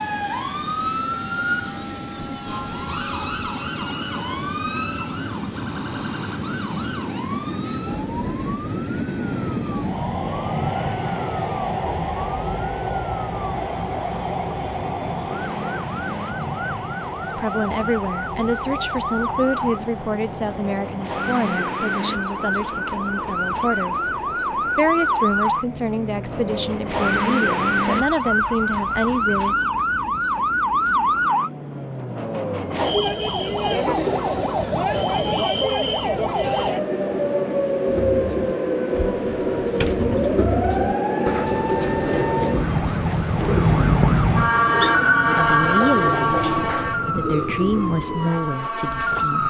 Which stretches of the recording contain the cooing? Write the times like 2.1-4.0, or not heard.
37.9-48.3.